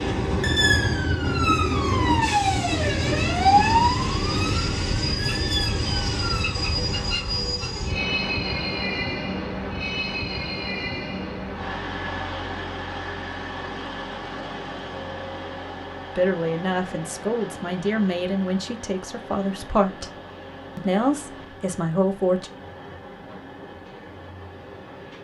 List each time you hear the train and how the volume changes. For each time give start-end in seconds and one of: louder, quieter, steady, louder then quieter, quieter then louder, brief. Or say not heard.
0.0-25.2 quieter.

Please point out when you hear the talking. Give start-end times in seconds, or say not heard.
16.1-20.1, 20.8-22.5.